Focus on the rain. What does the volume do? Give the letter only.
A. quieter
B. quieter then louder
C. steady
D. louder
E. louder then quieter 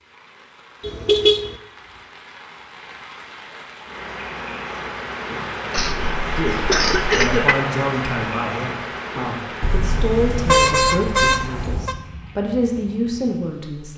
E.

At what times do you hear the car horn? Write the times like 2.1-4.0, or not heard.
0.8-1.6, 5.8-7.5, 9.6-11.9.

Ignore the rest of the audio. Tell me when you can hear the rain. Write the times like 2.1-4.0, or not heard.
0.0-13.9.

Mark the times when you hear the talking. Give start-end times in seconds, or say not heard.
6.3-13.9.